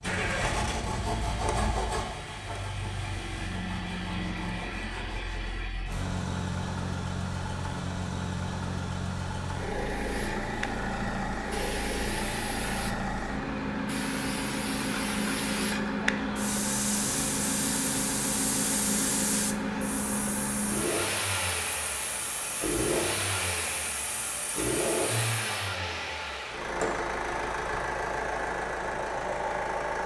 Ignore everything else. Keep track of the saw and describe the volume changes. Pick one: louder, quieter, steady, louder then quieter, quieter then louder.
quieter.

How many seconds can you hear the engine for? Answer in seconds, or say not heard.
30 s.